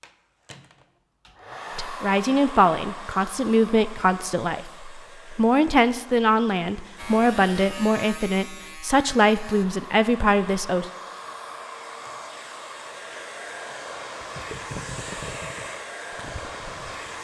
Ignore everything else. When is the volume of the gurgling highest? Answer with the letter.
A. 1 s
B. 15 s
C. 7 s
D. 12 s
B.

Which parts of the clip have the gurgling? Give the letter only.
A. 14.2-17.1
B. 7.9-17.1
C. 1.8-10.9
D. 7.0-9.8
A.